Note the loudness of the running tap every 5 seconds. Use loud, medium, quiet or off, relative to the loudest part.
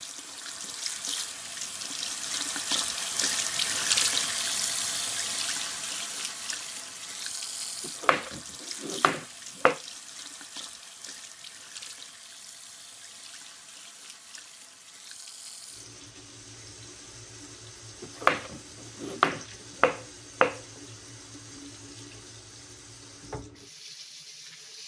loud, medium, quiet, quiet, quiet.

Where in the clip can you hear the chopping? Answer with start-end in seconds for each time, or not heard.
7.8-9.8, 18.0-20.6.